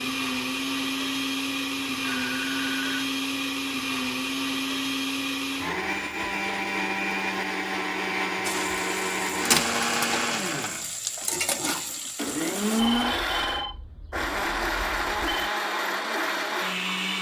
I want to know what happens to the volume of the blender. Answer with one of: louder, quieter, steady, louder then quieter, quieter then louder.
steady.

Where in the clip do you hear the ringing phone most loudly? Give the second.
13 s.